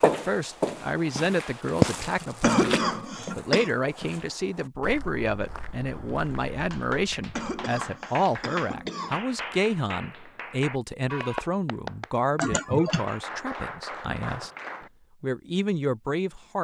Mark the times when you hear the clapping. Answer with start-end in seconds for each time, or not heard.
6.5-14.9.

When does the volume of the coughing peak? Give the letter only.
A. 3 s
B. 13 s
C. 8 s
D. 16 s
A.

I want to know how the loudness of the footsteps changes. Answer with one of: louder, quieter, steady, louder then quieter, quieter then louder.
louder then quieter.